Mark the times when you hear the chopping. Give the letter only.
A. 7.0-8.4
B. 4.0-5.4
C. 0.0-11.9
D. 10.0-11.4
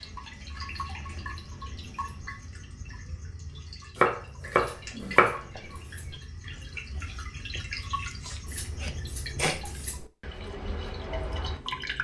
B.